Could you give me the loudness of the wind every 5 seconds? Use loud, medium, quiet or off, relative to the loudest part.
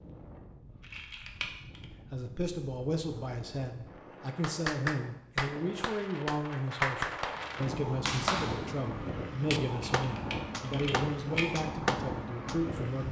quiet, loud, loud.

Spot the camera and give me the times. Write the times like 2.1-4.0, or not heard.
0.8-1.9, 9.8-11.4.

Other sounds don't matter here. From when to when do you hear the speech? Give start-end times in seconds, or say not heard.
2.1-13.0.